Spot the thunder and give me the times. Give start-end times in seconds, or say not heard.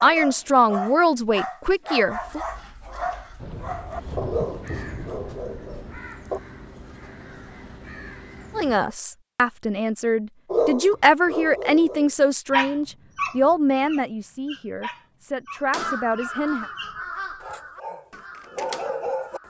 3.4-6.0.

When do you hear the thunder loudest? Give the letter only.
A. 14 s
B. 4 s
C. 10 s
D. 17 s
B.